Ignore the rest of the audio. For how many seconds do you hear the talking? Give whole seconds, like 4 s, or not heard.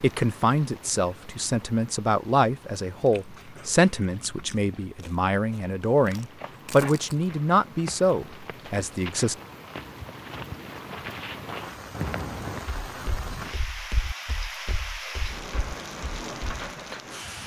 9 s.